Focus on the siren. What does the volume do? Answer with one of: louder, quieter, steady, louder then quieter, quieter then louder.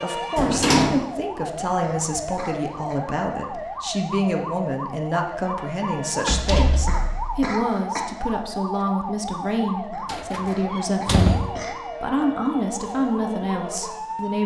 steady.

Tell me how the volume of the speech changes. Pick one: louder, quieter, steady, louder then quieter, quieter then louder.
steady.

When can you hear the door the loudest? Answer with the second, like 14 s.
1 s.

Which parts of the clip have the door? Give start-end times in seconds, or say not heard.
0.3-1.1, 6.2-7.5, 10.1-11.6.